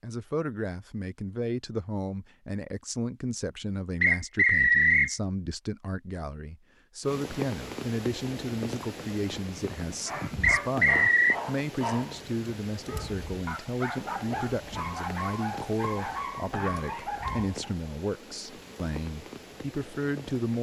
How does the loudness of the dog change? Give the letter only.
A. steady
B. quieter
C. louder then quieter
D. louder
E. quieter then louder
A.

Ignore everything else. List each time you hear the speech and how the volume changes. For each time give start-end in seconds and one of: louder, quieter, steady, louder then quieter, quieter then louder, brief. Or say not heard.
0.0-20.5 steady.